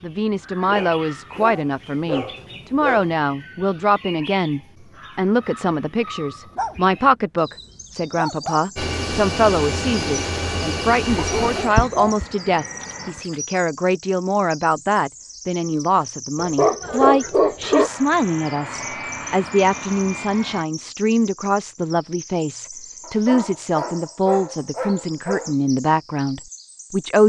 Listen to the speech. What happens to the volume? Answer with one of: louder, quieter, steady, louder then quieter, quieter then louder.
steady.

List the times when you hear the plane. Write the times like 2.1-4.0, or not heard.
8.8-13.2, 17.6-20.6.